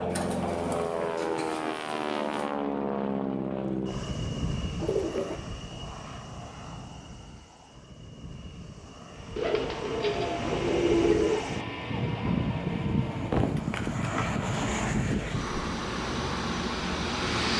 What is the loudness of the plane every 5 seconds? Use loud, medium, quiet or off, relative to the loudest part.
loud, quiet, loud, loud.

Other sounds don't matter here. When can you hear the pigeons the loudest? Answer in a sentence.
The volume of the pigeons peaks at 11 seconds.